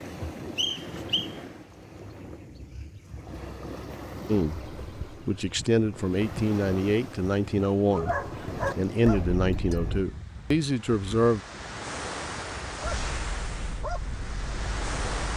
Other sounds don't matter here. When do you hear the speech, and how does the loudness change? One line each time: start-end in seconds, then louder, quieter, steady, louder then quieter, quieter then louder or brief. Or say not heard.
4.2-11.4 steady.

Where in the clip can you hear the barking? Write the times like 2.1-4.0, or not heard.
7.9-10.1, 12.8-15.2.